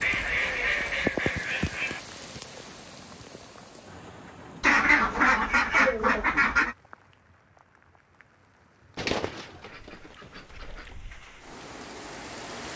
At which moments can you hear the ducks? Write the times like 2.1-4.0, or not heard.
0.0-2.0, 4.6-6.8, 8.9-10.9.